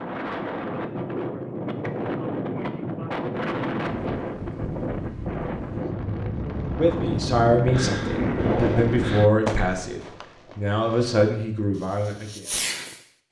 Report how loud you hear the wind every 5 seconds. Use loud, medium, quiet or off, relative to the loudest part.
loud, loud, off.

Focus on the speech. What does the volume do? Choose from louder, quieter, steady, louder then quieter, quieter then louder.
steady.